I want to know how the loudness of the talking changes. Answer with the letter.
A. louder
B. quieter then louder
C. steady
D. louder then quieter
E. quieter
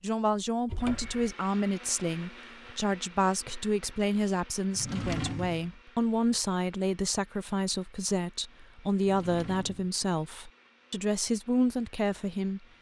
C.